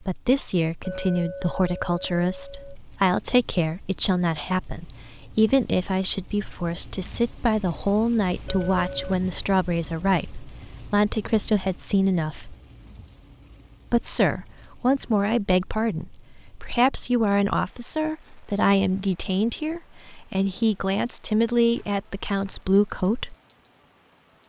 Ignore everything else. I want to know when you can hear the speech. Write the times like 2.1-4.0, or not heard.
0.0-12.6, 13.9-23.4.